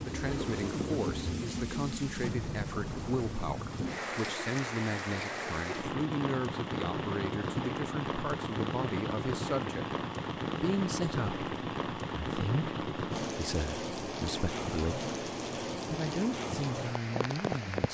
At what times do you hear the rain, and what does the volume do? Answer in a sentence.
The rain can be heard from 0.0 to 17.8 s, at a steady volume.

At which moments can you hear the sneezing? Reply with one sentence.
You can't hear the sneezing here.